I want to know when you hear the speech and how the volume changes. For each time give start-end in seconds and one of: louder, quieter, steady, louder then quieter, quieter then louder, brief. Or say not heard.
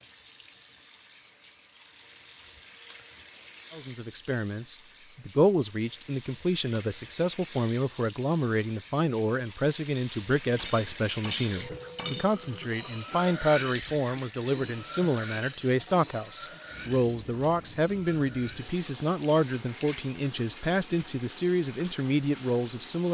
3.7-23.0 steady.